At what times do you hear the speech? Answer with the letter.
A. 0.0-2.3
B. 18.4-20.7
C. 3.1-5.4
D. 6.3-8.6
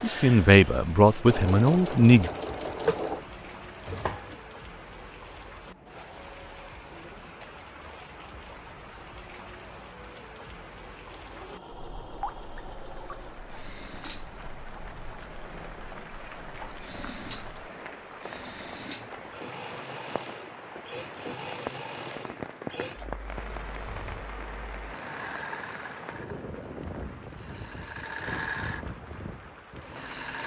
A.